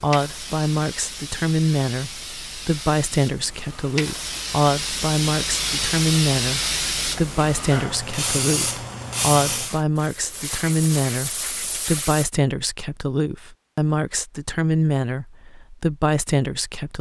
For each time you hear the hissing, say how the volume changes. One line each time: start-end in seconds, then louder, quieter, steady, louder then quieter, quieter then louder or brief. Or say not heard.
0.0-12.3 louder then quieter.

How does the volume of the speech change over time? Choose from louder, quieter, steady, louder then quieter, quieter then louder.
steady.